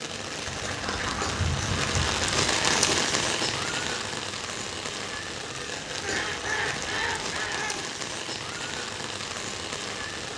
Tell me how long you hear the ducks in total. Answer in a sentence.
You can hear the ducks for 4 seconds altogether.